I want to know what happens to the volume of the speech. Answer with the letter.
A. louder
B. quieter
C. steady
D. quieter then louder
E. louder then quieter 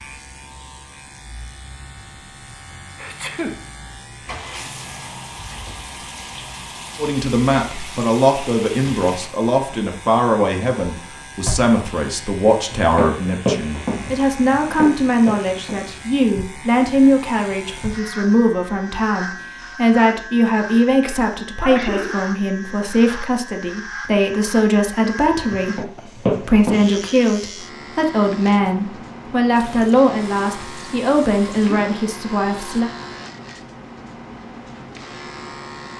C.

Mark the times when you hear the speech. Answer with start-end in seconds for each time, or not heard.
7.0-32.9.